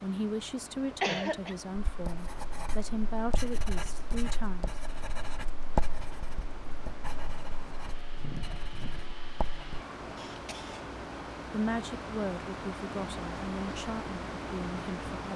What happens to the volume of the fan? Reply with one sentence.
The volume of the fan goes up.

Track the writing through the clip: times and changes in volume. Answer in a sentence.
The writing can be heard from 1.9 to 9.8 s, getting louder then quieter.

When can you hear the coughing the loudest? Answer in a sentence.
The loudest moment of the coughing is at 1 second.